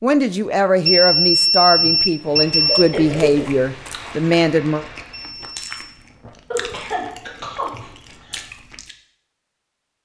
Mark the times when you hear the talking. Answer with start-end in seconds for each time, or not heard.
0.0-4.8.